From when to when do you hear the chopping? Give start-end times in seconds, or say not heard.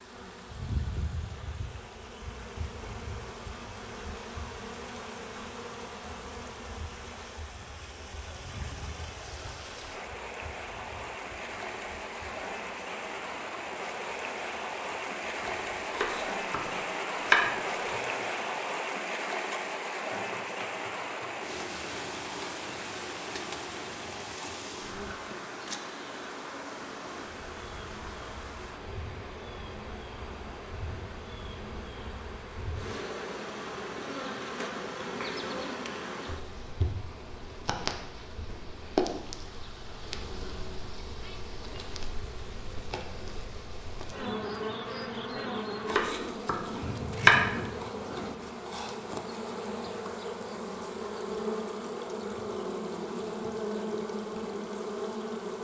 15.9-17.9, 45.9-47.4.